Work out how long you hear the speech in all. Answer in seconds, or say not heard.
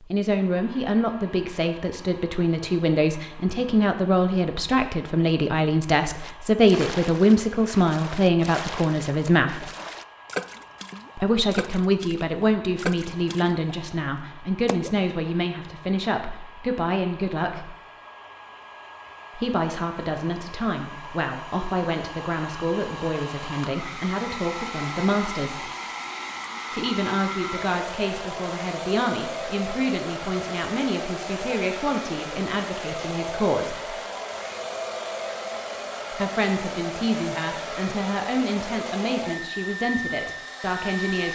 35 s.